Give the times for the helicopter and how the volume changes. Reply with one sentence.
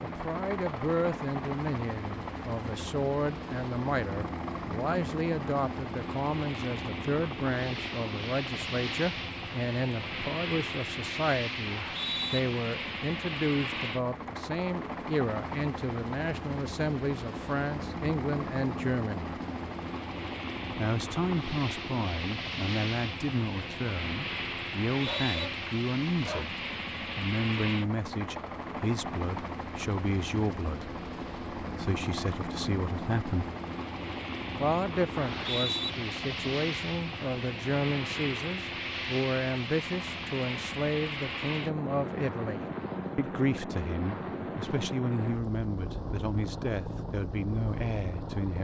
The helicopter can be heard from 0.0 to 48.6 s, at a steady volume.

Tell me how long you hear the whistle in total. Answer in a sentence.
The whistle can be heard for 2 seconds in total.